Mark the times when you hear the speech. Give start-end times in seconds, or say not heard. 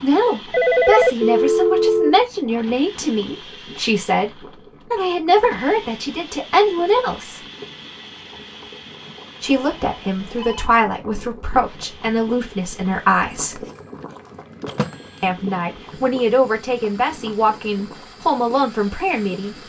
0.0-7.4, 9.4-13.6, 15.2-19.6.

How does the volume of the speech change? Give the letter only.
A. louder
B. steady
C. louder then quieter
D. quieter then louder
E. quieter
B.